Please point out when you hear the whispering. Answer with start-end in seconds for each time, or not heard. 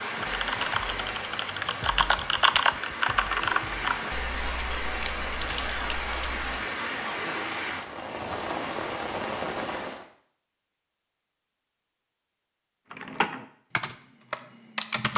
not heard.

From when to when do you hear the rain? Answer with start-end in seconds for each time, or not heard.
0.0-10.1.